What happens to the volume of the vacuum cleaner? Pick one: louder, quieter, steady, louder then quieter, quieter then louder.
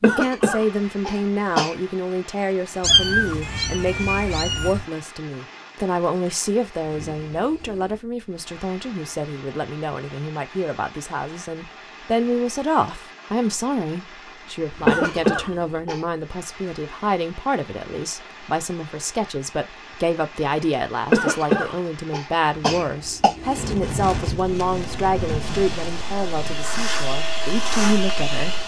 louder.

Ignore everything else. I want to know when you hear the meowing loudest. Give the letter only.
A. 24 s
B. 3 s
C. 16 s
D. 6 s
B.